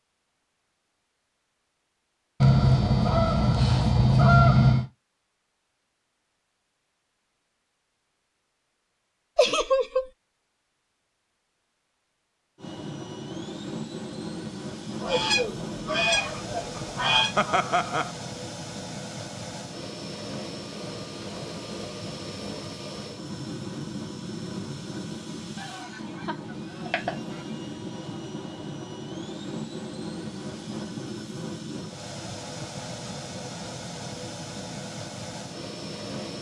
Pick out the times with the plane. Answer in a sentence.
You can hear the plane from 12.6 to 36.3 s.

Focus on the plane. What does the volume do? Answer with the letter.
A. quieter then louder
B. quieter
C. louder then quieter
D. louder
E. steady
E.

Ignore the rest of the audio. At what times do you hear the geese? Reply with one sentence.
You can hear the geese from 2.4 to 4.8 s, from 15.0 to 17.3 s, from 25.6 to 26.2 s and from 26.9 to 27.4 s.